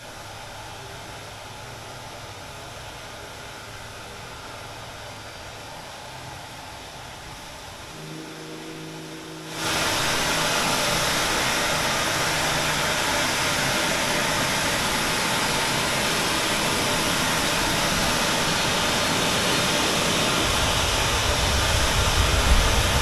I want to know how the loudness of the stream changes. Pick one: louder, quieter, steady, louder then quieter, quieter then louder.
louder.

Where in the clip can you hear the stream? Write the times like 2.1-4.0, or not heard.
0.0-22.9.